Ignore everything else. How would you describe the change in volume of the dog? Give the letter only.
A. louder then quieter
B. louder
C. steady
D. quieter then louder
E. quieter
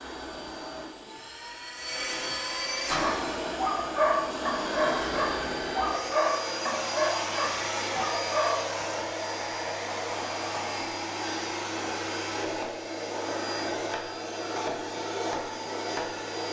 C.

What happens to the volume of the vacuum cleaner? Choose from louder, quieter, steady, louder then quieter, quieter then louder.
steady.